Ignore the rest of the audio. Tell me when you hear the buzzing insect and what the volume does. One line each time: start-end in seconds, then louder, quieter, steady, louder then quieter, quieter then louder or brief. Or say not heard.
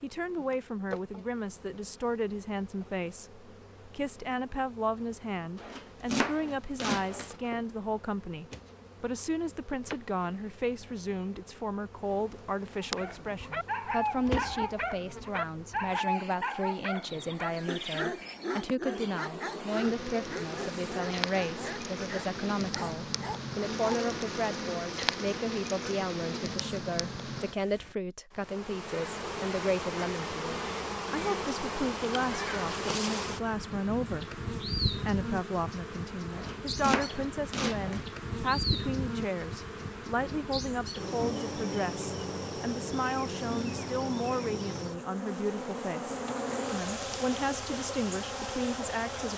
0.0-49.3 louder.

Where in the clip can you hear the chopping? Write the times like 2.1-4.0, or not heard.
5.5-7.3, 36.3-38.0.